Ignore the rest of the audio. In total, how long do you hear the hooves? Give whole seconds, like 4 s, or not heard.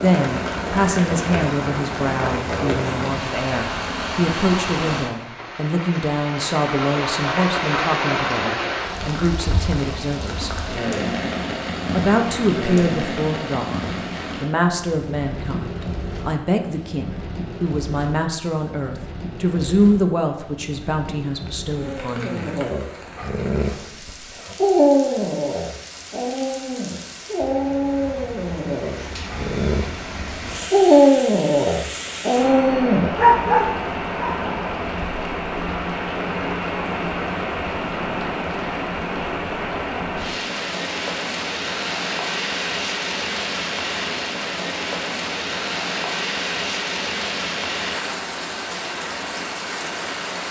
not heard.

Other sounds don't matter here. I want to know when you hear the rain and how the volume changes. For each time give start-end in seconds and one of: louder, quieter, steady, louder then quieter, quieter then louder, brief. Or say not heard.
0.0-50.4 quieter then louder.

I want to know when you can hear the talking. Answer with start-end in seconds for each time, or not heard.
0.0-10.5, 11.9-22.5.